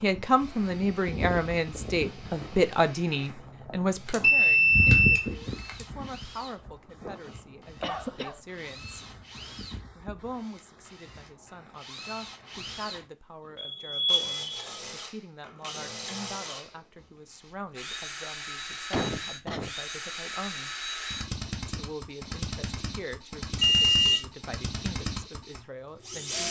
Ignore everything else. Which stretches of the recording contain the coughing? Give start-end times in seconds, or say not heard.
7.8-8.4, 18.9-19.7.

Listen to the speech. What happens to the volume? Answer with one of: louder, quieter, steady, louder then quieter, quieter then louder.
quieter.